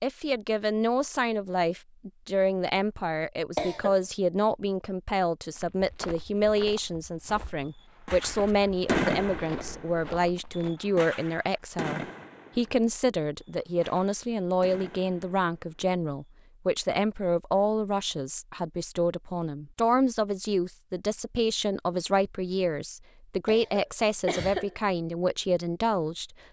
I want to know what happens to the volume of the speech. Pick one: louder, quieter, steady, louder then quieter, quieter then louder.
steady.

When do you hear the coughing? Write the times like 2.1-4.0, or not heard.
3.5-4.0, 23.4-24.8.